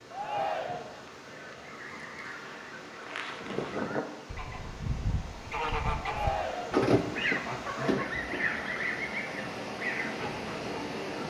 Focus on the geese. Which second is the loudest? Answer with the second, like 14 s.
7 s.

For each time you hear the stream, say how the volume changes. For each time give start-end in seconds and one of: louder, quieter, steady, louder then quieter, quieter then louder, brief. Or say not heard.
0.0-11.2 louder.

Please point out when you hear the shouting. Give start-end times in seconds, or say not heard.
0.1-1.0, 6.0-6.8.